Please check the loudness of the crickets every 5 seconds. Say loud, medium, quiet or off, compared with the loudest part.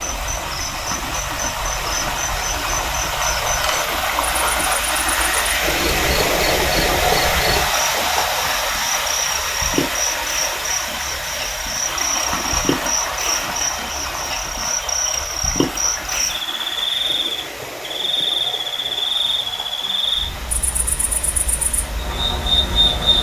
medium, medium, loud, loud, loud.